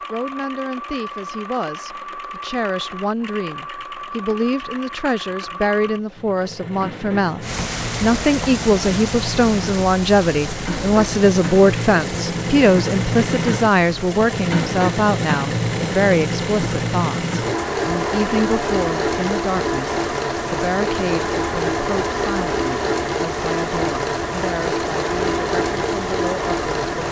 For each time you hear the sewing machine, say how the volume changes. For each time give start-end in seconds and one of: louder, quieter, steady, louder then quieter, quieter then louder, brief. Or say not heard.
0.0-27.0 louder.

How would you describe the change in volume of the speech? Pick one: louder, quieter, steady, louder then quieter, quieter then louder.
louder then quieter.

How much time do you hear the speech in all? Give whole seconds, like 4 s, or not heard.
27 s.